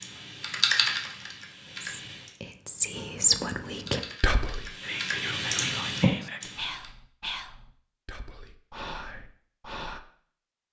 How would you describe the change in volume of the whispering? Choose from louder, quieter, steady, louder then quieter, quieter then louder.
quieter.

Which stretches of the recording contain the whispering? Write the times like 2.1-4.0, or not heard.
1.8-10.0.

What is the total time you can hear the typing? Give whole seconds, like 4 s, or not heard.
5 s.